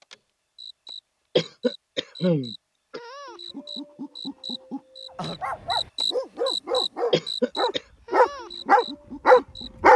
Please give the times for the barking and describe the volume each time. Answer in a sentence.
You can hear the barking from 5.4 to 9.9 s, getting louder.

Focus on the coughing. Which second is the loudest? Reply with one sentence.
The volume of the coughing peaks at 2 seconds.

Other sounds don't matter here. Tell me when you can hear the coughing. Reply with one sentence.
The coughing can be heard from 1.4 to 3.0 s and from 7.1 to 7.8 s.